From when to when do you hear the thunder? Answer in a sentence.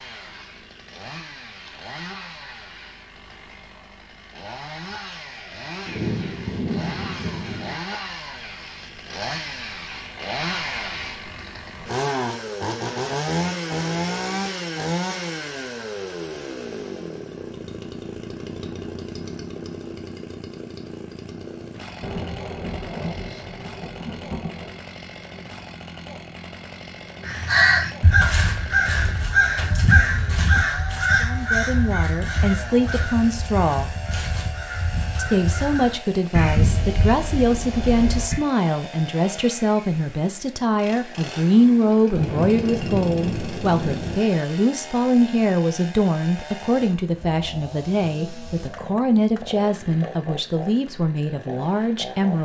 You can hear the thunder from 5.8 to 7.8 s, from 22.0 to 24.8 s and from 42.1 to 44.1 s.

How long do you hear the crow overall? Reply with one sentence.
The crow can be heard for 11 seconds in total.